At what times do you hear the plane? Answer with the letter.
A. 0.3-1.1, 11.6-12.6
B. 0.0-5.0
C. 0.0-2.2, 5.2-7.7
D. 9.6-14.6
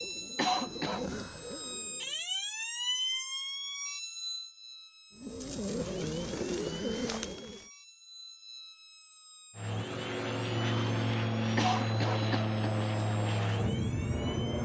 D.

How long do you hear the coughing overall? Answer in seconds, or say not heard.
2 s.